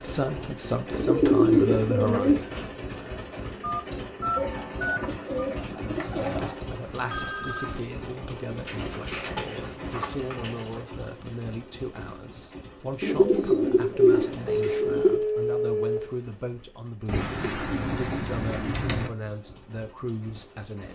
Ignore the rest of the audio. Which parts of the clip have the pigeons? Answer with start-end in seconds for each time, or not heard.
0.9-2.6, 4.3-6.5, 8.7-10.8, 13.0-15.2, 17.1-19.1.